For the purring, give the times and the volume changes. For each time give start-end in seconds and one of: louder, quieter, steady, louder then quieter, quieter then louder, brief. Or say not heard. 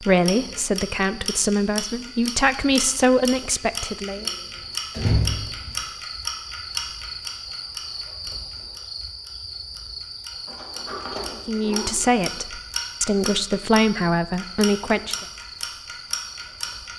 not heard.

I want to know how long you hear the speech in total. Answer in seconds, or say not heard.
8 s.